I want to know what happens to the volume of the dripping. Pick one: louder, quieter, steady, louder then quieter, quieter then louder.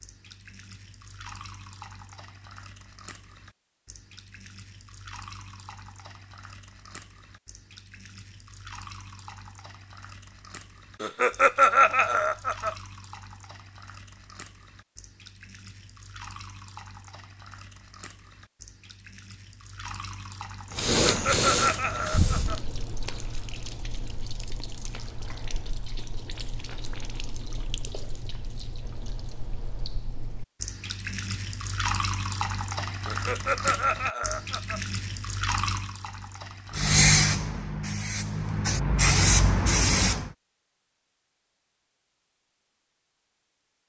louder.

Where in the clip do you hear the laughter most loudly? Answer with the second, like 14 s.
12 s.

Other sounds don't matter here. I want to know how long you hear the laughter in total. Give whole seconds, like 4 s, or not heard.
5 s.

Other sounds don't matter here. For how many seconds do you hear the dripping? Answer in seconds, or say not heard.
37 s.